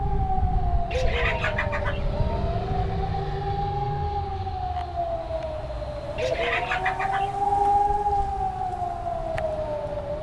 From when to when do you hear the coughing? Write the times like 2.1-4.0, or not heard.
not heard.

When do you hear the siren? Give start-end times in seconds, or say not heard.
0.0-10.1.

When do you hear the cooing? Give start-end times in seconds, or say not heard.
0.9-2.5, 6.2-7.8.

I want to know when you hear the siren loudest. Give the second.
8 s.